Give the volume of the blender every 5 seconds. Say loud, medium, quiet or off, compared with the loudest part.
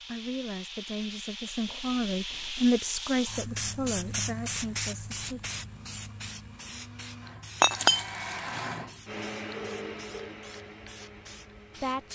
off, loud, medium.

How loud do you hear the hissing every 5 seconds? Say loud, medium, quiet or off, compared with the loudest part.
loud, medium, quiet.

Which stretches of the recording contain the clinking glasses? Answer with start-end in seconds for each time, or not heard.
7.6-8.6.